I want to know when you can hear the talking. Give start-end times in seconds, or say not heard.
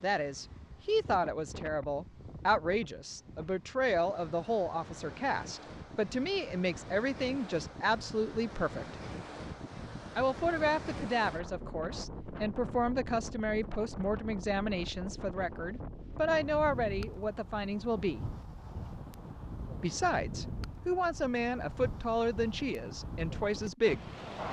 0.0-8.9, 10.2-18.2, 19.8-24.1.